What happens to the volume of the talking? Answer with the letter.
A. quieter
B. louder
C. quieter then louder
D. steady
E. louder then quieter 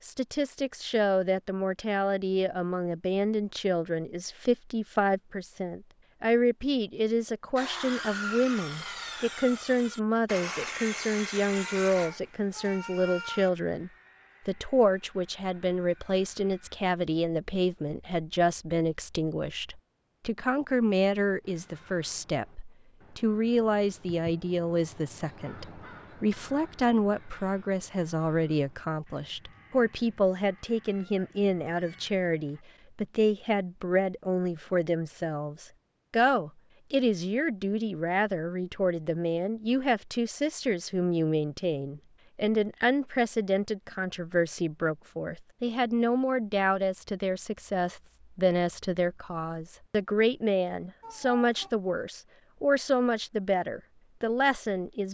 D.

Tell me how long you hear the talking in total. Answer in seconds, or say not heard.
55 s.